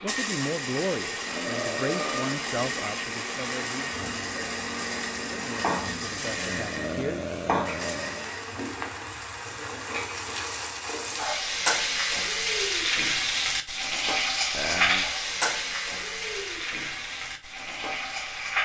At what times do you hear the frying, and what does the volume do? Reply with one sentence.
The frying can be heard from 0.0 to 18.6 s, getting louder.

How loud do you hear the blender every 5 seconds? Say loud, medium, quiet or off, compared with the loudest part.
loud, loud, off, off.